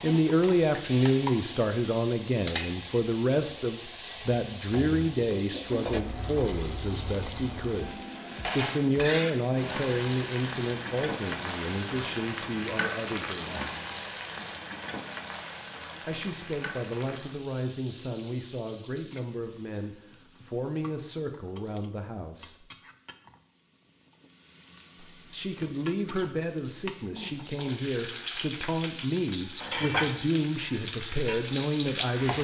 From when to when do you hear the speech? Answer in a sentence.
You can hear the speech from 0.0 to 13.7 s, from 16.1 to 22.6 s and from 25.0 to 32.3 s.